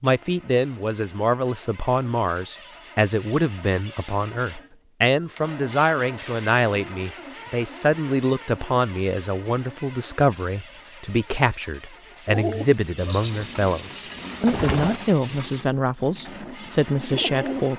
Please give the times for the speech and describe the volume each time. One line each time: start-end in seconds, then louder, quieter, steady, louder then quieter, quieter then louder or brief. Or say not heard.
0.0-17.7 steady.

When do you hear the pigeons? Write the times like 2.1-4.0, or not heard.
12.2-17.7.